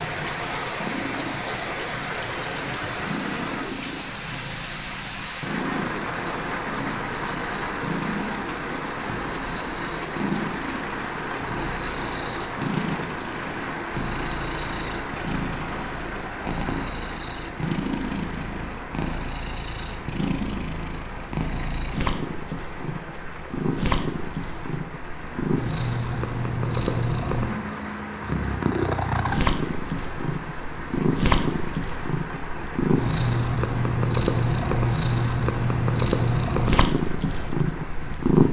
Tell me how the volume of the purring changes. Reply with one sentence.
The loudness of the purring goes up.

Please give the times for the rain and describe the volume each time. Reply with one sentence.
You can hear the rain from 0.0 to 38.4 s, getting quieter.